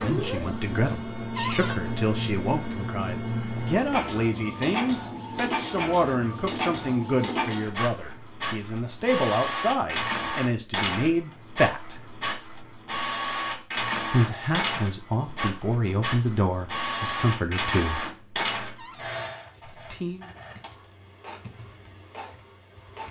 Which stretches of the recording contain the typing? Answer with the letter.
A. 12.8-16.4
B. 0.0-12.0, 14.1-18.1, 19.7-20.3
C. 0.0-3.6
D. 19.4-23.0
D.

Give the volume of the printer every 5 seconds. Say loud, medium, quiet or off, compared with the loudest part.
loud, loud, loud, loud, quiet.